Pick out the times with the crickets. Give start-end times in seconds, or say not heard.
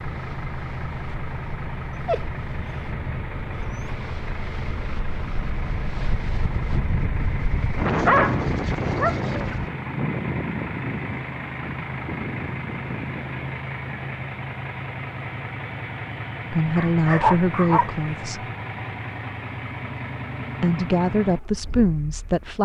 not heard.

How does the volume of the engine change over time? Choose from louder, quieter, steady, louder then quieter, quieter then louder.
steady.